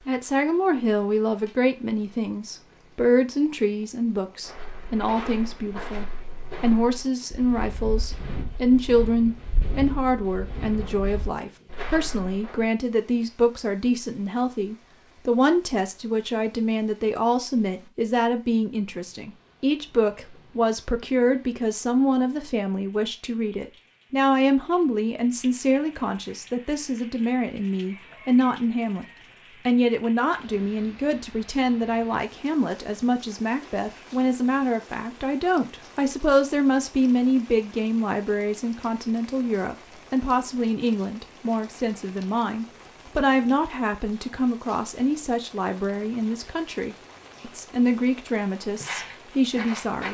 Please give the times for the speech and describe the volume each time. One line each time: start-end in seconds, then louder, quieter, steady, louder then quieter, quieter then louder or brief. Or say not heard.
0.1-50.0 steady.